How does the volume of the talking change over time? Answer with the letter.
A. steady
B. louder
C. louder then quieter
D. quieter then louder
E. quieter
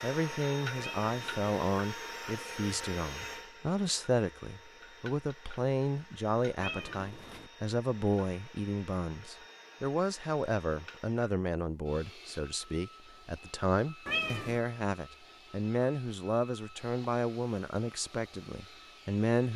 A.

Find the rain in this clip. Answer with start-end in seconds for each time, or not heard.
not heard.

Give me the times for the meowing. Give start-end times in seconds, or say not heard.
0.8-1.4, 6.5-7.5, 14.1-14.6.